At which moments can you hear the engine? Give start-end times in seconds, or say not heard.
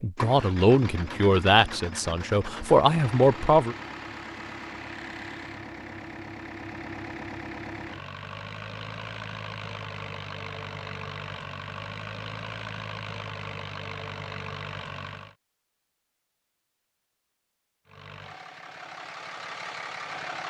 0.0-15.3, 17.9-20.4.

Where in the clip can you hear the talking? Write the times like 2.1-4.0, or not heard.
0.0-3.8.